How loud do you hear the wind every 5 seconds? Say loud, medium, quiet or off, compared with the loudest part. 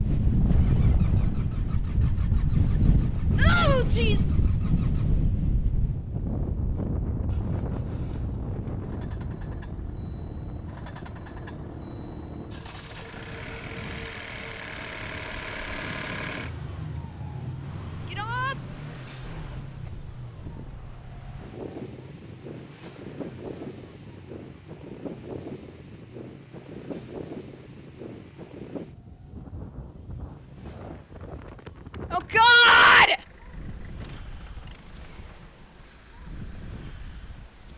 loud, medium, quiet, quiet, quiet, quiet, quiet, quiet.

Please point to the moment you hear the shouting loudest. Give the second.
33 s.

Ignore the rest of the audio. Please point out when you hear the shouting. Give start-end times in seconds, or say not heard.
3.4-4.3, 18.1-18.6, 32.1-33.2.